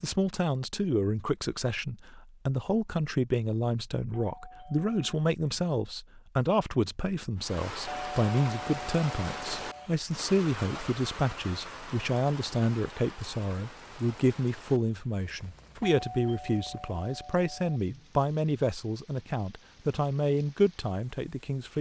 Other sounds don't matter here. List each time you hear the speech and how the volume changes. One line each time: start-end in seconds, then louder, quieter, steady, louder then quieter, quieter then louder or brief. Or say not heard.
0.0-21.7 steady.